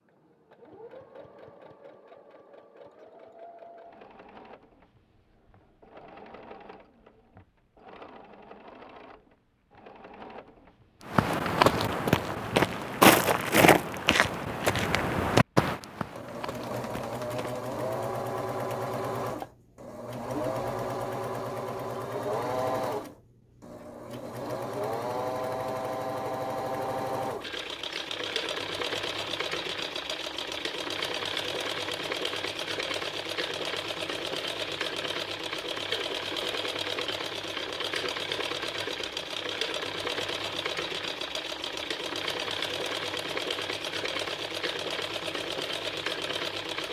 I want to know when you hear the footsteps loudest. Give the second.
13 s.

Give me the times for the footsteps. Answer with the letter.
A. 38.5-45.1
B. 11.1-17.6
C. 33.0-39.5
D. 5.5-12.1
B.